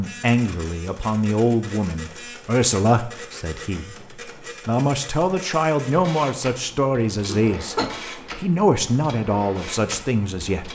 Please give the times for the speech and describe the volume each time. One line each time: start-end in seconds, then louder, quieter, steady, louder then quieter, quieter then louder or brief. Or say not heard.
0.0-10.6 steady.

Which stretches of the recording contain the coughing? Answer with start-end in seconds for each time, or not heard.
7.2-7.9.